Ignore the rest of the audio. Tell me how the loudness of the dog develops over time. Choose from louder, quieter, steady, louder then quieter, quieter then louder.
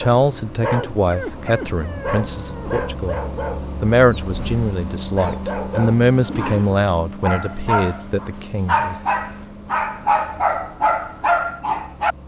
louder.